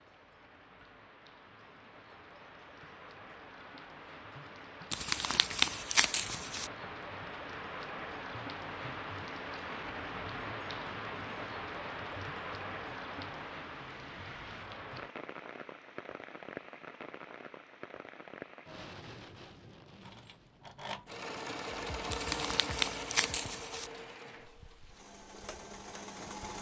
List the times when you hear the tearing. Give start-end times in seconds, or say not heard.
4.9-6.7, 22.1-23.9.